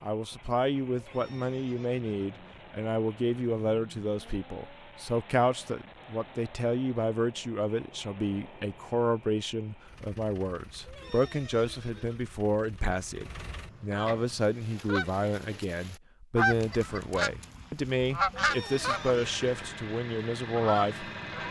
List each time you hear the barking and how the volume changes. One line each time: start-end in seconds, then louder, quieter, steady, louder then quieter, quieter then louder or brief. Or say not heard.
not heard.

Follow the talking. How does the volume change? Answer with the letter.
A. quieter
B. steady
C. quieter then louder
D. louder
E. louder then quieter
B.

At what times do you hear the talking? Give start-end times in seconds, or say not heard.
0.0-21.4.